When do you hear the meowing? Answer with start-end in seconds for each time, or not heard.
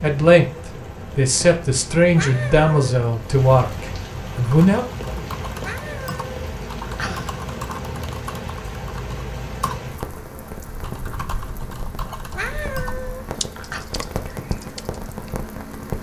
2.1-3.0, 5.6-7.3, 12.3-13.8.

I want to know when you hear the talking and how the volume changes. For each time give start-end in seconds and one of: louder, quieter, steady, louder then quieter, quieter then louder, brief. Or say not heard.
0.0-4.8 louder then quieter.